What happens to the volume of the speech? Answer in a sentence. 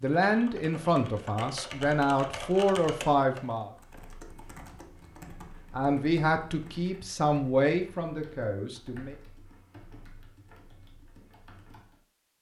The loudness of the speech goes down.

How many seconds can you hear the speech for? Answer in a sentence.
The speech can be heard for 7 seconds in total.